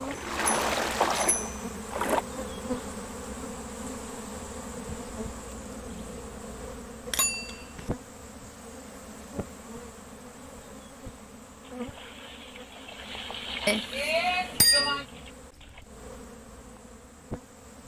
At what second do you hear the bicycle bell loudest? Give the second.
15 s.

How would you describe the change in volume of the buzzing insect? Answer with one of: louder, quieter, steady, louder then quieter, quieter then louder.
quieter.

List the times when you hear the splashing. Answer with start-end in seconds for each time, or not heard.
0.0-2.2, 11.6-15.8.